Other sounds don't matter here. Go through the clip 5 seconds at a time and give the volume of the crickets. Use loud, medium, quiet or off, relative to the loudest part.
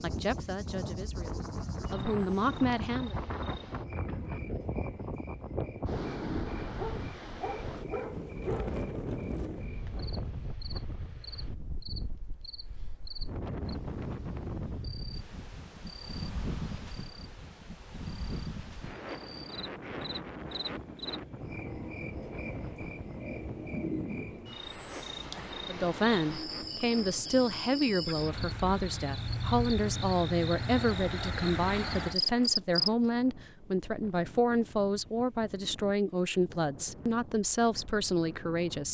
quiet, quiet, quiet, quiet, medium, medium, loud, off.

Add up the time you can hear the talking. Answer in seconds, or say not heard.
16 s.